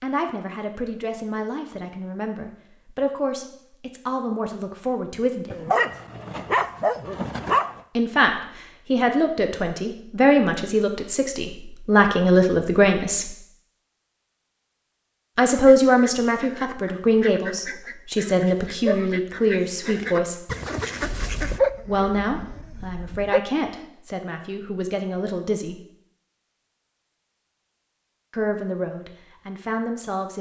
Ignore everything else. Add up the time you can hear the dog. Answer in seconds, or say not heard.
5 s.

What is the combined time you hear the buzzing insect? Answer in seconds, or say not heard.
not heard.